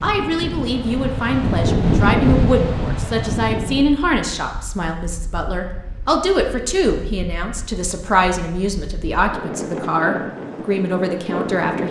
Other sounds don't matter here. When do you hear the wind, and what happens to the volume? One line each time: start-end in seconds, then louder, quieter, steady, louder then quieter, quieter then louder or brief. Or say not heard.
0.0-11.8 quieter then louder.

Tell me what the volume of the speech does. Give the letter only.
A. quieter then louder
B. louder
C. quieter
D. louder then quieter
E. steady
E.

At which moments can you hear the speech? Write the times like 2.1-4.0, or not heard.
0.0-11.8.